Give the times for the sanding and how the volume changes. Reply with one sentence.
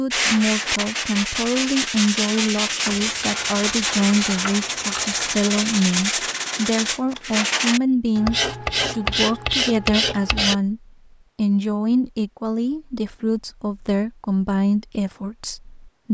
You can hear the sanding from 0.1 to 10.6 s, at a steady volume.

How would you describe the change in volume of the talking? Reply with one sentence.
The loudness of the talking stays about the same.